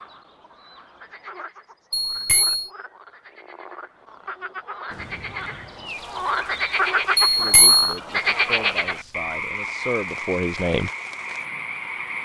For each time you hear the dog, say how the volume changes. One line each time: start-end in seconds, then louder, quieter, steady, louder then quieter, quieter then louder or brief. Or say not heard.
not heard.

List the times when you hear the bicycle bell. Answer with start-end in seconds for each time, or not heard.
1.9-2.7, 7.3-7.9.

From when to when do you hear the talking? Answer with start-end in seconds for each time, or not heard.
7.3-10.9.